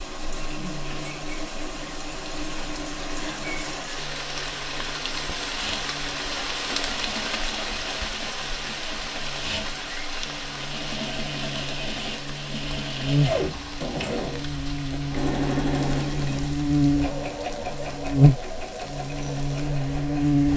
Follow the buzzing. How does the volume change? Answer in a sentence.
The loudness of the buzzing goes up.